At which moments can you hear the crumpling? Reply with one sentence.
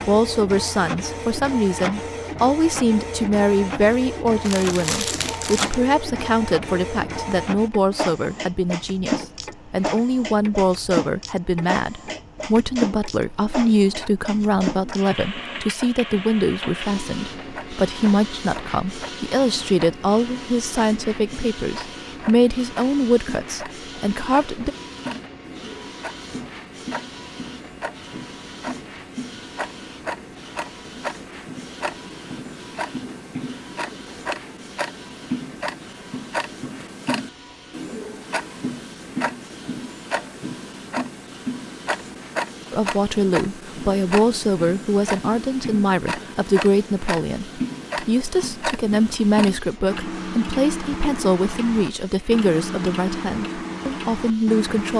You can hear the crumpling from 4.4 to 5.8 s.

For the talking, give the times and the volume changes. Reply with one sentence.
You can hear the talking from 0.1 to 24.7 s, at a steady volume; and from 42.7 to 54.9 s, at a steady volume.